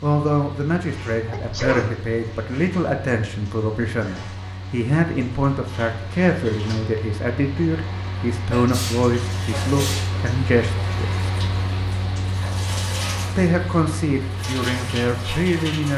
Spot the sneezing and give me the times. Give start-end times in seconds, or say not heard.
1.3-1.9, 8.5-10.2.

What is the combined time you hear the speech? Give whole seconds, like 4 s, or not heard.
14 s.